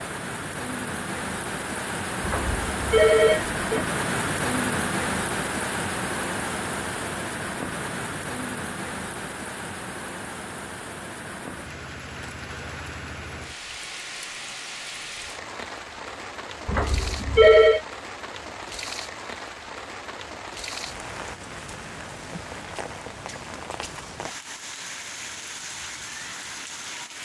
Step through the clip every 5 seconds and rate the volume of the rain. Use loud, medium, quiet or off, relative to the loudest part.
loud, loud, medium, medium, medium, medium.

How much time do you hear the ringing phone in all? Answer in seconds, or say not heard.
3 s.